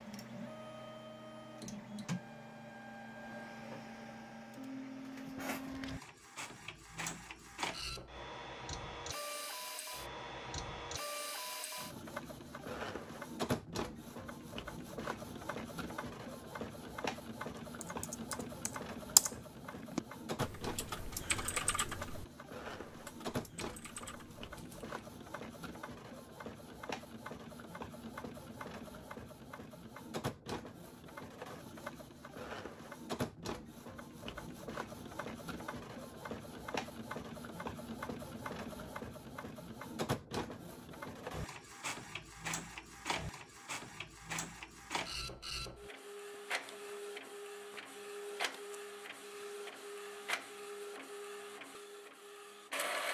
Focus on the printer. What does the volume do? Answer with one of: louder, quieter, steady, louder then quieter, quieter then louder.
steady.